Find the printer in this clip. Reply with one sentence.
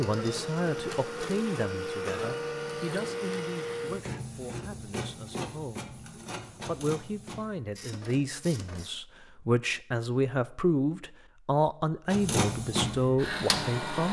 You can hear the printer from 0.0 to 8.9 s and from 12.1 to 14.0 s.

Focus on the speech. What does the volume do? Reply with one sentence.
The volume of the speech goes down, then up.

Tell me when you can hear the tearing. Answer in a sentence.
The tearing can't be heard in this clip.